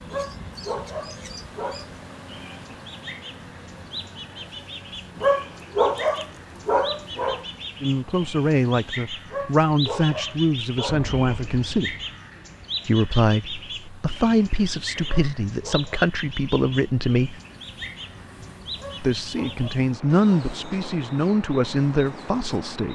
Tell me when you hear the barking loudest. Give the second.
6 s.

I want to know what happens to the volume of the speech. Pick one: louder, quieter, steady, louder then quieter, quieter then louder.
steady.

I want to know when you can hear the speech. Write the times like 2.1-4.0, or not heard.
7.8-11.9, 12.8-17.4, 19.0-22.9.